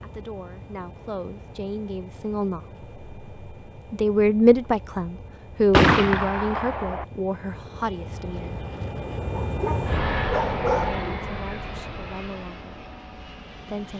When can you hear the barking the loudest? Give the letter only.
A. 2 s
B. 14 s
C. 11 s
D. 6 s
C.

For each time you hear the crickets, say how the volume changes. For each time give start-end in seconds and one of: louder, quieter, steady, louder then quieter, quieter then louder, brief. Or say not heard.
not heard.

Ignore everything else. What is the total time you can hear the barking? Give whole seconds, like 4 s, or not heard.
2 s.